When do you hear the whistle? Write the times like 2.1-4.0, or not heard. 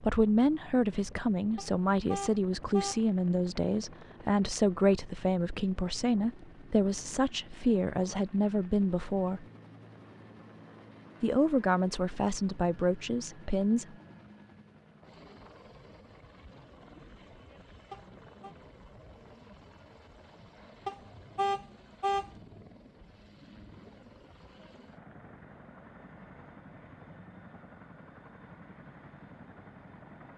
not heard.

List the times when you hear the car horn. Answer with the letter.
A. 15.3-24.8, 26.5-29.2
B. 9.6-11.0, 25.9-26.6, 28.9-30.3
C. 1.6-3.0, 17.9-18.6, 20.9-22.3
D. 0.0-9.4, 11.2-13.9
C.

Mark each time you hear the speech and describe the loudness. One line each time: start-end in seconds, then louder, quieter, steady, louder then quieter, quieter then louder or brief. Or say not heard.
0.0-9.4 steady
11.2-13.9 brief.